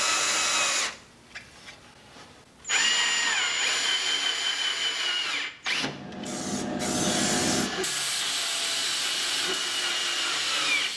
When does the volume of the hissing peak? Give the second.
7 s.